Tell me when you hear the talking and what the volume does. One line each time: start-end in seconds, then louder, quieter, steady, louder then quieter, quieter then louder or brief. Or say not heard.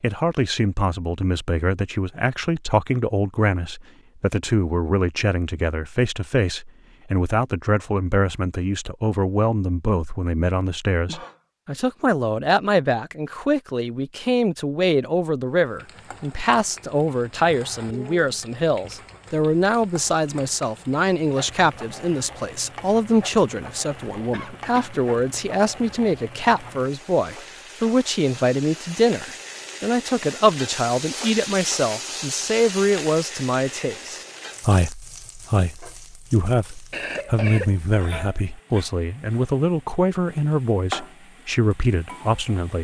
0.0-42.8 steady.